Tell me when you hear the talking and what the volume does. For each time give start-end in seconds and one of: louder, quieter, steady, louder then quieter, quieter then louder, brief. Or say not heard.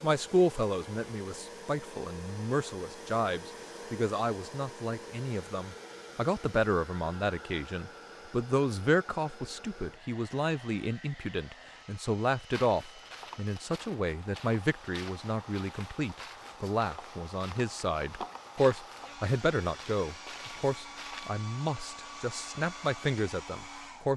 0.0-24.1 steady.